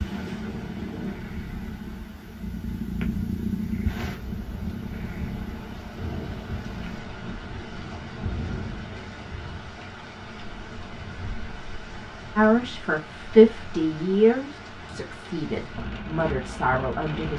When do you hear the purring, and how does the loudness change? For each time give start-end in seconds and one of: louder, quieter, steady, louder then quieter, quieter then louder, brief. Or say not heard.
0.0-7.0 louder then quieter.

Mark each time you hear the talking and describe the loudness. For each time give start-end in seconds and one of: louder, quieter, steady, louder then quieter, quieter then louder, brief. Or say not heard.
12.3-17.3 quieter then louder.